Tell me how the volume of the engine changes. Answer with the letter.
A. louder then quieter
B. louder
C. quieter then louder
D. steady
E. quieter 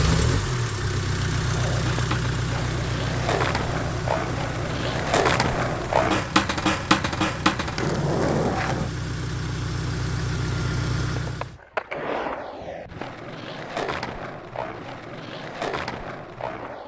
C.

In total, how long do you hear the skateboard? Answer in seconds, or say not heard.
13 s.